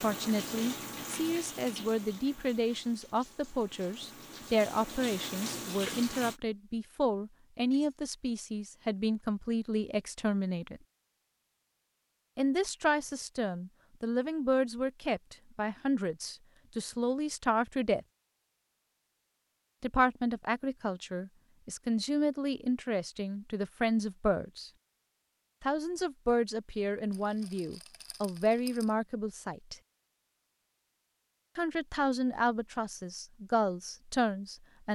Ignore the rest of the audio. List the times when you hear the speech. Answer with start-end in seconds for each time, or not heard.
0.0-10.8, 12.3-18.0, 19.8-24.7, 25.6-29.8, 31.6-34.9.